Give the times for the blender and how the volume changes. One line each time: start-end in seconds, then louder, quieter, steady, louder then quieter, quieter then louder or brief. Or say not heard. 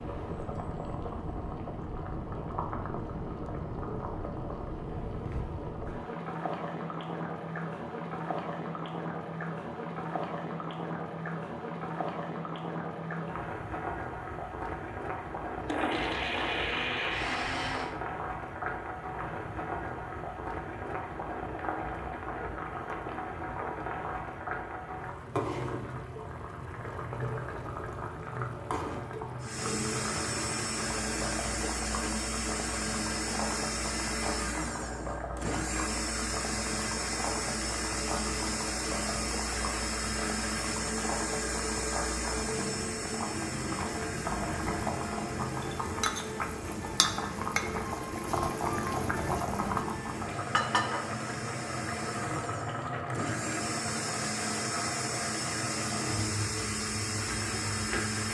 15.6-17.9 brief
29.4-58.2 quieter then louder.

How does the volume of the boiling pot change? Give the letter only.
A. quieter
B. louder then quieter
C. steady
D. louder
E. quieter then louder
C.